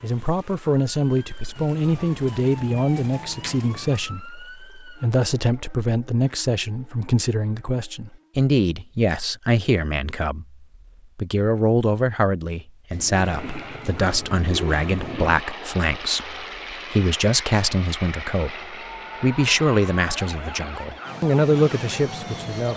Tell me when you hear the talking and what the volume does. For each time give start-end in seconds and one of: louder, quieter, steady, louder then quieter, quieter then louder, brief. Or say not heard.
0.0-22.7 steady.